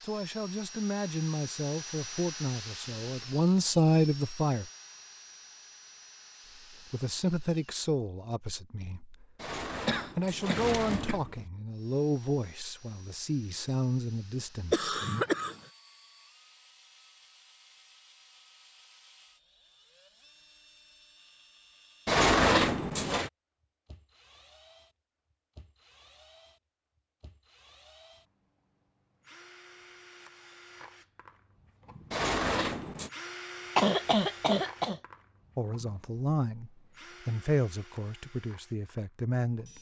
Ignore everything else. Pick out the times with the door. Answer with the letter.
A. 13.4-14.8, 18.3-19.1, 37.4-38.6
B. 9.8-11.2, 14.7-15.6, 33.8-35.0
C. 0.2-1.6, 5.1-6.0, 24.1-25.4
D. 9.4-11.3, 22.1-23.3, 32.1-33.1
D.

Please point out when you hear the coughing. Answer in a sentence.
The coughing can be heard from 9.8 to 11.2 s, from 14.7 to 15.6 s and from 33.8 to 35.0 s.